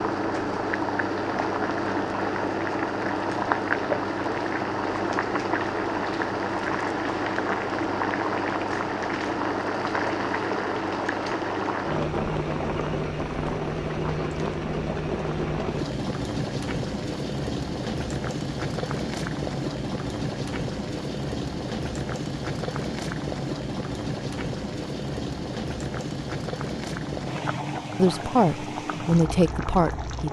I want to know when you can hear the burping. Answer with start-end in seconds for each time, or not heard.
not heard.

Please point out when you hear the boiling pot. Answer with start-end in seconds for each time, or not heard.
0.0-30.2.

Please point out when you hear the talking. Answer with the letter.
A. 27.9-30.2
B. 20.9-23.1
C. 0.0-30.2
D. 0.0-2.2
A.